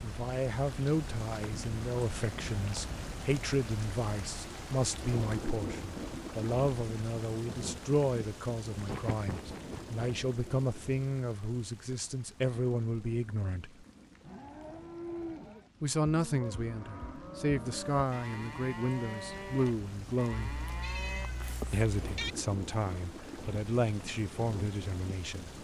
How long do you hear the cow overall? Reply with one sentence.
You can hear the cow for 7 seconds altogether.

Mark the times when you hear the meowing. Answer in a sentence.
The meowing can be heard from 8.8 to 10.0 s and from 20.5 to 22.4 s.